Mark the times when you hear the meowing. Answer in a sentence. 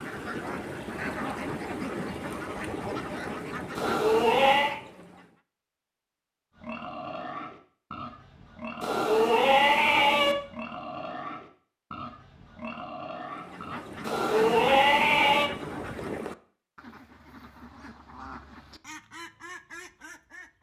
The meowing can be heard from 3.8 to 4.8 s, from 8.8 to 10.3 s and from 14.1 to 15.5 s.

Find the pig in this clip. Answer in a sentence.
The pig can be heard from 6.5 to 14.1 s.